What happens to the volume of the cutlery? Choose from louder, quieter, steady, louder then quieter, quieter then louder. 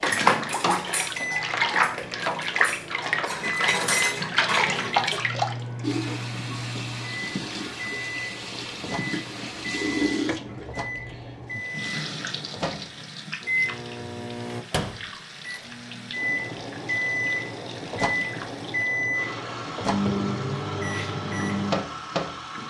quieter then louder.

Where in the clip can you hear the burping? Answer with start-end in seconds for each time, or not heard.
not heard.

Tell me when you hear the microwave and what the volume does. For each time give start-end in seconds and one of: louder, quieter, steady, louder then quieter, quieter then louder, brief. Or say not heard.
0.0-22.6 louder.